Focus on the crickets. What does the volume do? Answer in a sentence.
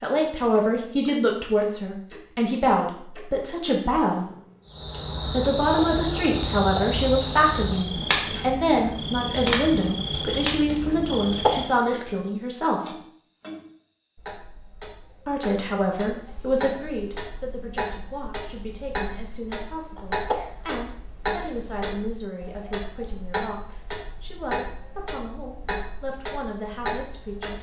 The loudness of the crickets goes down.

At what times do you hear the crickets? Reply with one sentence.
The crickets can be heard from 4.7 to 27.5 s.